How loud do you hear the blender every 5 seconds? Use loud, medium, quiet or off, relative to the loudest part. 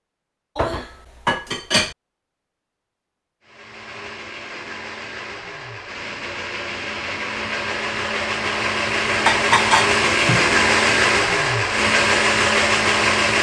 quiet, medium, loud.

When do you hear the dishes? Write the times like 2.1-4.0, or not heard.
0.6-1.9, 9.2-10.5.